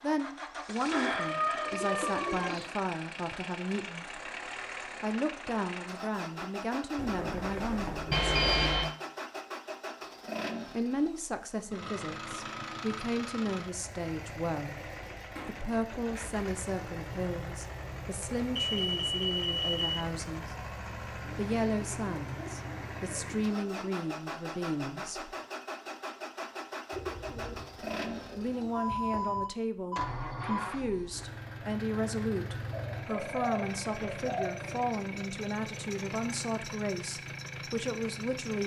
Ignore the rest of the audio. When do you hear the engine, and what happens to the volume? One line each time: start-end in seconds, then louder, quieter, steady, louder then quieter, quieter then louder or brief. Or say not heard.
0.0-38.6 steady.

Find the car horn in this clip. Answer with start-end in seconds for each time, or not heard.
not heard.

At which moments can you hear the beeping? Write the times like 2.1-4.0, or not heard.
8.1-8.9, 18.6-20.0, 28.8-30.6.